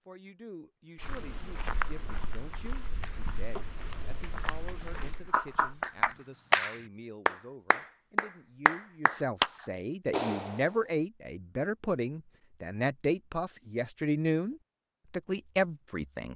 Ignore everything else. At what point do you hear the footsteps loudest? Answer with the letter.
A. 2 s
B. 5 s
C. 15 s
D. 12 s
A.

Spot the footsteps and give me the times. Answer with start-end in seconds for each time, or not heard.
0.9-6.2.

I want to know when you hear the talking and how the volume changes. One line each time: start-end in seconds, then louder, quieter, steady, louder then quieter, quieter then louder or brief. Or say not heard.
0.1-16.3 louder.